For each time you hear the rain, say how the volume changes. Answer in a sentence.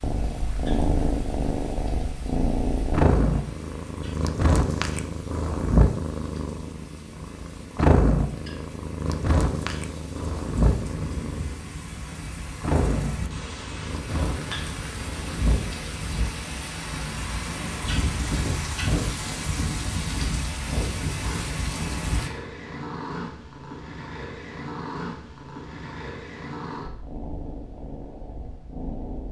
You can hear the rain from 0.0 to 22.3 s, getting louder.